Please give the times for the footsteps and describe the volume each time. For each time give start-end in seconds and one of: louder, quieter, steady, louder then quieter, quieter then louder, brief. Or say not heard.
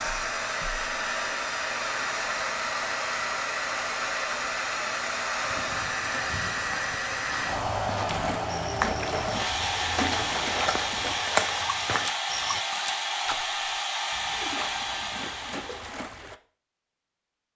5.3-12.6 louder.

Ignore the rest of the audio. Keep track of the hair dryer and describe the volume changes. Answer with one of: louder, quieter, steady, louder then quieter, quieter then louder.
steady.